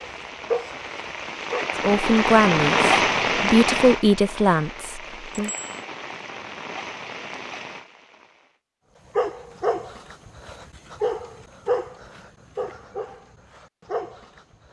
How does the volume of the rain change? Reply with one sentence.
The loudness of the rain goes up, then down.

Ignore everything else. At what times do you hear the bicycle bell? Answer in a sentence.
The bicycle bell can be heard from 5.3 to 5.8 s.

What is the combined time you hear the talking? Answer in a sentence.
The talking can be heard for 4 seconds in total.